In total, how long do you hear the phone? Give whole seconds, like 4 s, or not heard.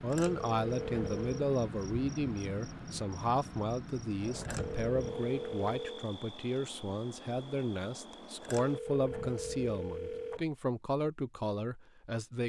5 s.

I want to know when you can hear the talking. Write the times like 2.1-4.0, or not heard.
0.0-12.4.